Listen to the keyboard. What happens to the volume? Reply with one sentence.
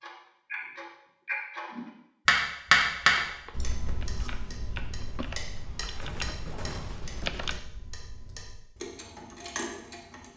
The loudness of the keyboard goes up.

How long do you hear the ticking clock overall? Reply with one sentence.
The ticking clock can be heard for 10 seconds in total.